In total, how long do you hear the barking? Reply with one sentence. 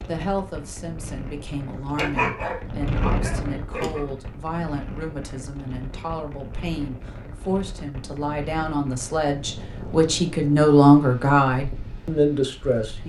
The barking can be heard for 2 seconds in total.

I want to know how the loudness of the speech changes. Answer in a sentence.
The loudness of the speech goes up.